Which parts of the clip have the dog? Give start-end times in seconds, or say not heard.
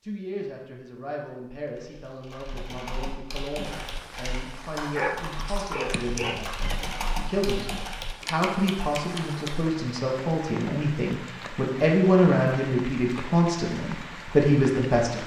4.8-6.7.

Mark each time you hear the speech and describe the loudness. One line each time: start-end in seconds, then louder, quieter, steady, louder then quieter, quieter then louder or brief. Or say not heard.
0.0-15.2 louder.